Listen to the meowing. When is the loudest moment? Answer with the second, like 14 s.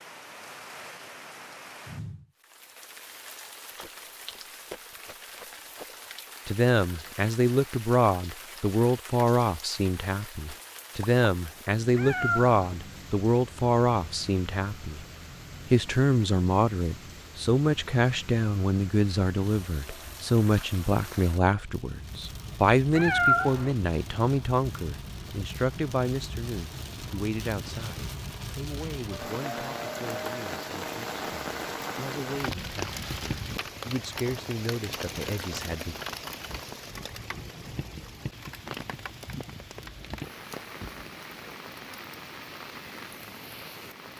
23 s.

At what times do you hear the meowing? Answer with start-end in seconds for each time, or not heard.
11.9-12.6, 22.9-23.8.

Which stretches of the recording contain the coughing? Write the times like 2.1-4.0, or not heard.
not heard.